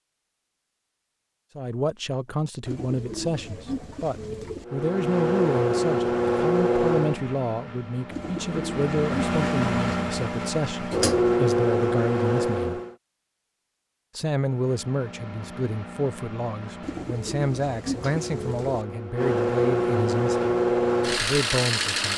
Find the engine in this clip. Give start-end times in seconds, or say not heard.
4.7-12.9, 14.3-22.1.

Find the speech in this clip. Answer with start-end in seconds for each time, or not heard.
1.6-12.8, 14.2-20.6, 21.1-22.1.